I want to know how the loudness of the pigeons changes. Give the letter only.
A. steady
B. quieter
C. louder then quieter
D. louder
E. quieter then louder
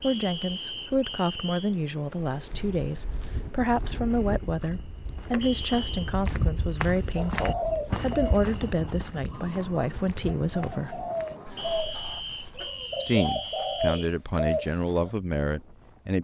E.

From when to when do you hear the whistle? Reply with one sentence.
The whistle can be heard from 0.0 to 1.8 s, from 5.4 to 6.2 s and from 11.6 to 14.1 s.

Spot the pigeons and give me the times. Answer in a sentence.
The pigeons can be heard from 7.2 to 15.1 s.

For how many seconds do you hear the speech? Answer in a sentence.
The speech can be heard for 14 seconds in total.